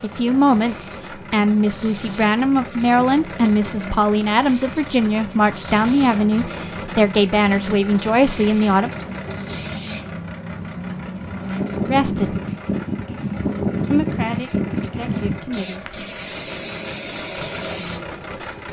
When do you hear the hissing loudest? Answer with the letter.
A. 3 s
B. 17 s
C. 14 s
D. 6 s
C.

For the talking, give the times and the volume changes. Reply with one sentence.
You can hear the talking from 0.0 to 8.9 s, at a steady volume; briefly from 11.8 to 12.3 s; and briefly from 13.9 to 16.0 s.